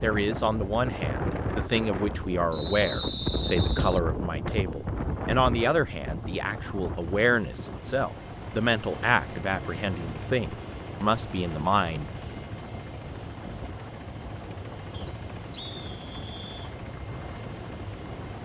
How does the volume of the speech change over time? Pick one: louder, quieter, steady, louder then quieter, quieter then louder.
steady.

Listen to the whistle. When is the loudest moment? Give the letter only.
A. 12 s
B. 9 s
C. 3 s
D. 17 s
C.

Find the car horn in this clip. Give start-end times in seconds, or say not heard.
not heard.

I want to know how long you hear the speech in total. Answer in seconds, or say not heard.
12 s.